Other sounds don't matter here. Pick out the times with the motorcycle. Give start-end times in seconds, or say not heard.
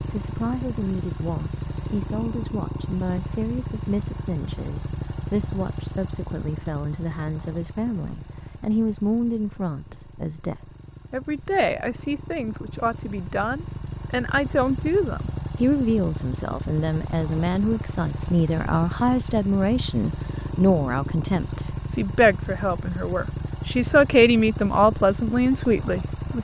0.0-26.3.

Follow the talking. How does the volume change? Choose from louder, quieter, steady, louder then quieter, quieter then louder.
louder.